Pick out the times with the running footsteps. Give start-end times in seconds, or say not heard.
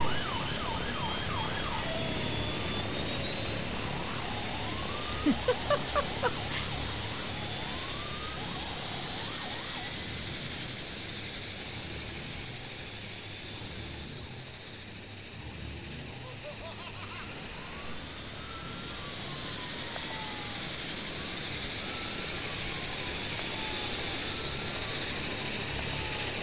not heard.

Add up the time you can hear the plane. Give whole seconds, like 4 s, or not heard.
26 s.